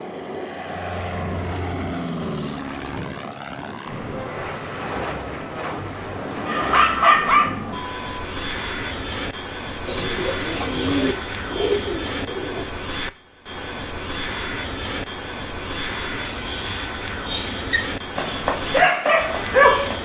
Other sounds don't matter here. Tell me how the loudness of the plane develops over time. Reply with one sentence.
The loudness of the plane stays about the same.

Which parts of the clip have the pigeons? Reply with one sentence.
You can hear the pigeons from 9.8 to 12.7 s.